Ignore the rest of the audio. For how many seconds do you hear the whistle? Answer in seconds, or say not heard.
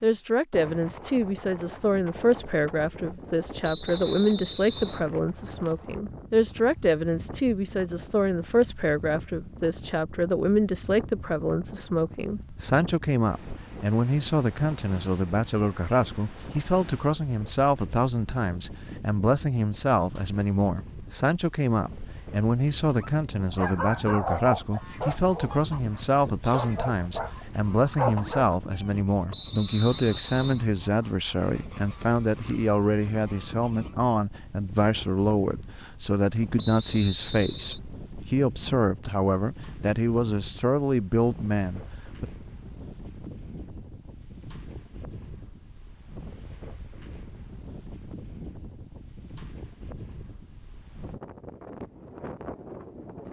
4 s.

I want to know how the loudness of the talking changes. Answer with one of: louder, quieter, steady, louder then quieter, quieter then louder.
steady.